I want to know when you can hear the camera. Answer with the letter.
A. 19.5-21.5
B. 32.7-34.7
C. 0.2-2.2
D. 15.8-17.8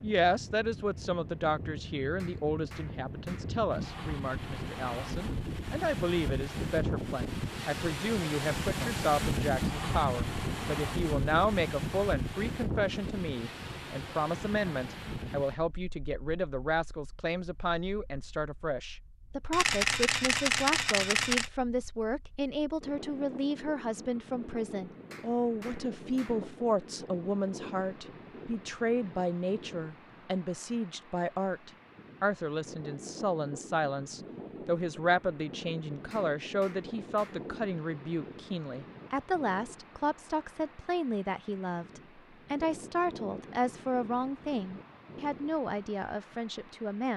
A.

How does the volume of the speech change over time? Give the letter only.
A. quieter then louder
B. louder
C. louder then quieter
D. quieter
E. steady
E.